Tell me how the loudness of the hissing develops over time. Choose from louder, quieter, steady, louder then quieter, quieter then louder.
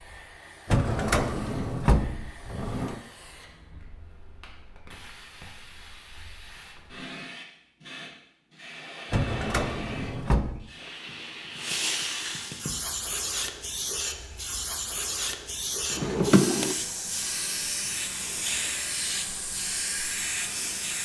louder.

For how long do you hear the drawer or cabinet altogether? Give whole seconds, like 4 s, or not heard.
5 s.